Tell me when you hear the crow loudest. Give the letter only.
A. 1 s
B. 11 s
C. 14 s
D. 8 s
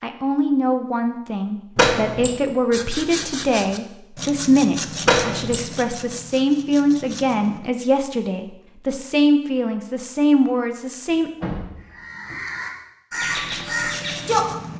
C.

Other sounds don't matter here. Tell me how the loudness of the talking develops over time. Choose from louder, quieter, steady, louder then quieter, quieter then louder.
steady.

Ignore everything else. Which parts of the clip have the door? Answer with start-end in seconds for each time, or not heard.
1.8-2.4, 5.0-5.7, 11.1-12.4.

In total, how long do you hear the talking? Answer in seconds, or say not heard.
11 s.